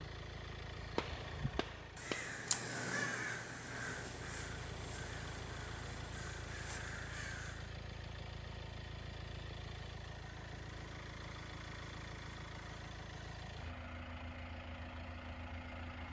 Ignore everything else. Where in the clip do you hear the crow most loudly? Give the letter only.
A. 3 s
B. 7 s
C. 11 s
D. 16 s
A.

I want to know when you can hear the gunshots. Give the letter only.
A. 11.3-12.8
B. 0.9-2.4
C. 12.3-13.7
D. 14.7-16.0
B.